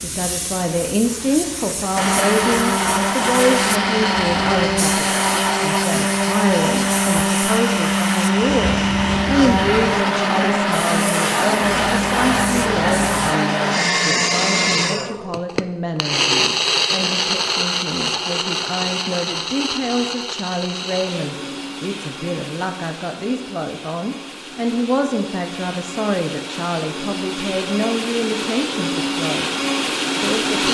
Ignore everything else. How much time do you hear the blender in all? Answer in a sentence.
The blender can be heard for 29 seconds in total.